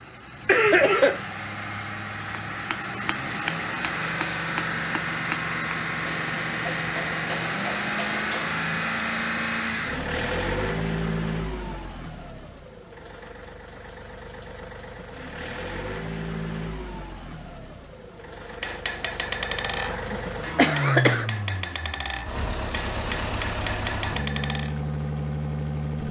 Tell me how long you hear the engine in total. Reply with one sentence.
You can hear the engine for 26 seconds altogether.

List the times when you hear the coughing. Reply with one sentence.
The coughing can be heard from 0.5 to 1.2 s and from 19.9 to 21.3 s.